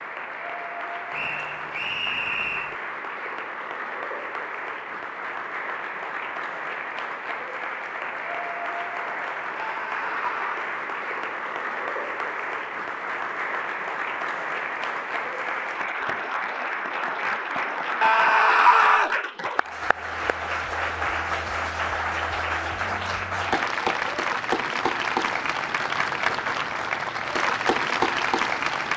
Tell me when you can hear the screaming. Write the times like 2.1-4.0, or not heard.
9.6-10.7, 18.0-19.1.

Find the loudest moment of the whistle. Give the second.
2 s.